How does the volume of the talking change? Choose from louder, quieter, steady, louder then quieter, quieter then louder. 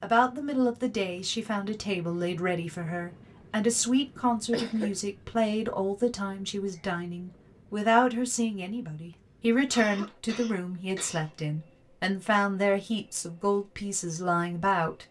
steady.